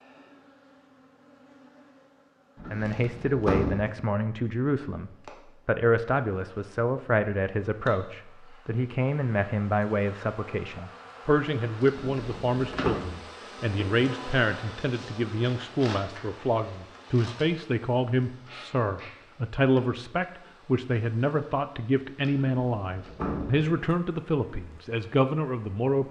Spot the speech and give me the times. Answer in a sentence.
The speech can be heard from 2.7 to 26.0 s.